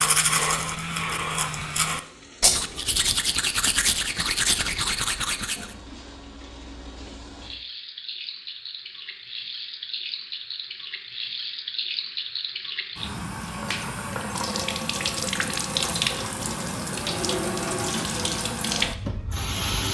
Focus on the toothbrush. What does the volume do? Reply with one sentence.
The loudness of the toothbrush stays about the same.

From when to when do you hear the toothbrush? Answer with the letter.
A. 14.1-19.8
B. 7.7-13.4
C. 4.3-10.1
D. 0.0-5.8
D.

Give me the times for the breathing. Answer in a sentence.
The breathing can't be heard in this clip.